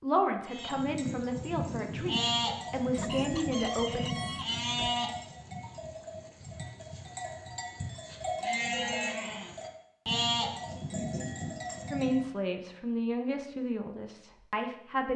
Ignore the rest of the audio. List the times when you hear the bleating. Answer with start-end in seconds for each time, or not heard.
0.5-12.2.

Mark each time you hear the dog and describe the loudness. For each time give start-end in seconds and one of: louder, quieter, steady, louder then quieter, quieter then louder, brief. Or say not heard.
not heard.